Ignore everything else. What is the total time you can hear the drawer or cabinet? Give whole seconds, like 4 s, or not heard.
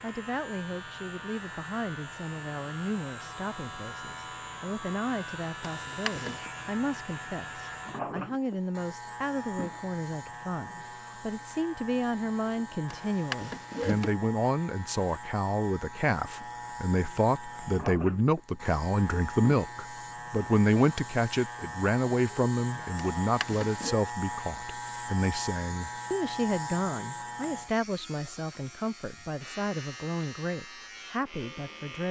3 s.